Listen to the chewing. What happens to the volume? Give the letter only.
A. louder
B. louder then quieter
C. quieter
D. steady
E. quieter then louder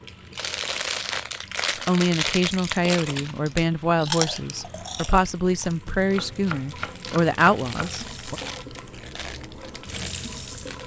C.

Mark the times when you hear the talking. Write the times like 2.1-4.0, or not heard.
1.9-8.3.